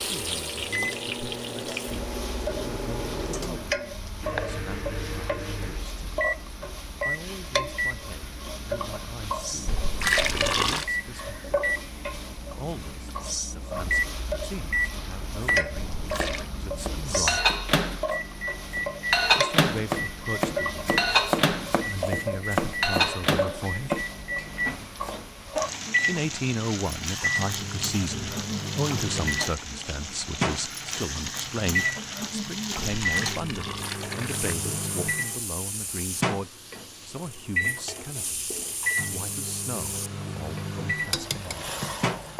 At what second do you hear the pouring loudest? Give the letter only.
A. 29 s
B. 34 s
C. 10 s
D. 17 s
C.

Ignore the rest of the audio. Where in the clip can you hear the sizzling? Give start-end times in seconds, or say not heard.
0.0-42.3.